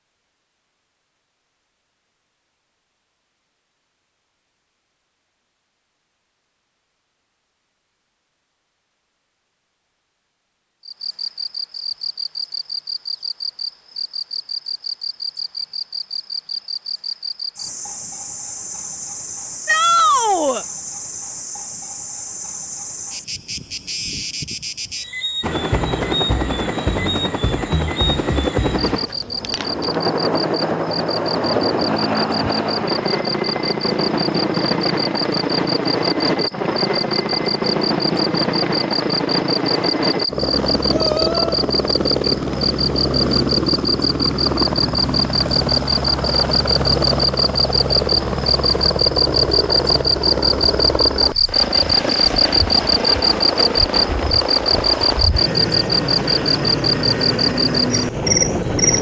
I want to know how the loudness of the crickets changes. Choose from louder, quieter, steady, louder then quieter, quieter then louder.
louder.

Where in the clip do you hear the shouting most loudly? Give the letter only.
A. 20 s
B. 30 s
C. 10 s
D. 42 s
A.